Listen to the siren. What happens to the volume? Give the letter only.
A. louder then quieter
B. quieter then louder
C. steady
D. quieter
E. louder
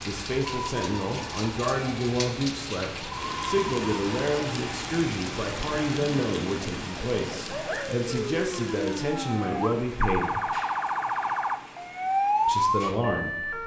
E.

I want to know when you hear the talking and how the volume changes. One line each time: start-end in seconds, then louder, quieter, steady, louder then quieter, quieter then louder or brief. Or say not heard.
0.0-10.4 steady
12.4-13.6 brief.